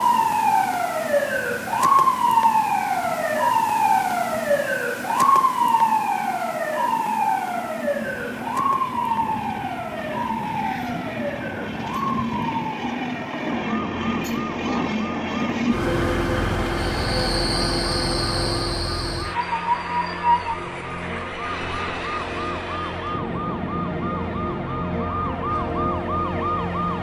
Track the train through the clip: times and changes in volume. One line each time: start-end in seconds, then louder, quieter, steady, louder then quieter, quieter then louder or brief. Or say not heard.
0.0-26.9 louder then quieter.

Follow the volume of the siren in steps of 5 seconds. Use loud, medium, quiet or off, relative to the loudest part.
loud, loud, medium, quiet, medium, medium.